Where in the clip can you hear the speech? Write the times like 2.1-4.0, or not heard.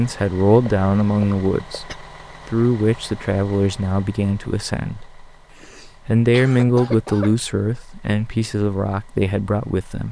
0.0-5.2, 5.8-10.0.